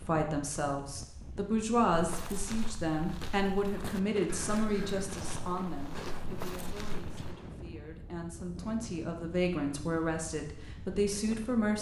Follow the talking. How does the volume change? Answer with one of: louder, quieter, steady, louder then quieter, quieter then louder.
quieter then louder.